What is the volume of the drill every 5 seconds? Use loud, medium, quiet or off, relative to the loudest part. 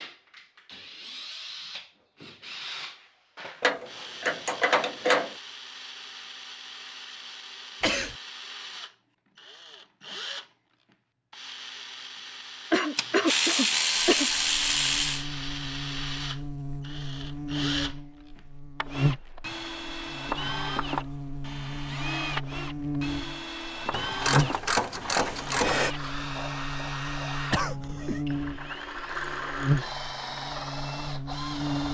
medium, medium, medium, loud, loud, loud, loud.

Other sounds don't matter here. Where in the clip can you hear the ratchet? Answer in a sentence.
The ratchet can be heard from 3.6 to 5.3 s, from 12.9 to 15.2 s and from 23.9 to 25.9 s.